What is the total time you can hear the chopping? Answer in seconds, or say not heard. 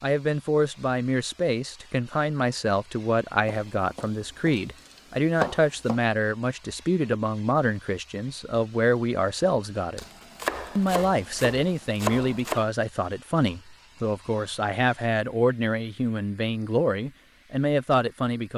5 s.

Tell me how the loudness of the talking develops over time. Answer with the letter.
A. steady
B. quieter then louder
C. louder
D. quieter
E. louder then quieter
A.